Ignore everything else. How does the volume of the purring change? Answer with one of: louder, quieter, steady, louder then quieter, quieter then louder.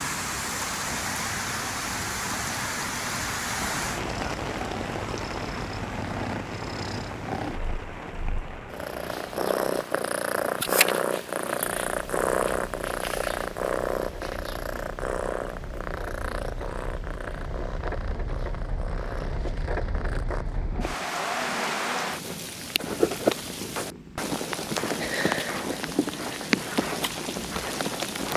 louder then quieter.